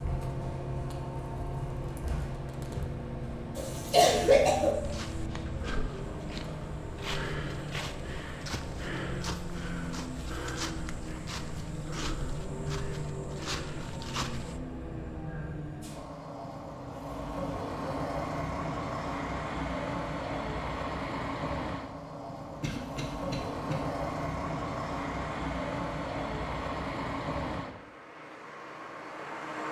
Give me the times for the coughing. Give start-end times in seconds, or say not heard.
3.5-4.8, 22.6-23.8.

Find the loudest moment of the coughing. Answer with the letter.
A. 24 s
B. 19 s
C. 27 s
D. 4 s
D.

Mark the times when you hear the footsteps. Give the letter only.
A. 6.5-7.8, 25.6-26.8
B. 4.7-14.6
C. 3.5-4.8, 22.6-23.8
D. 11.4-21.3
B.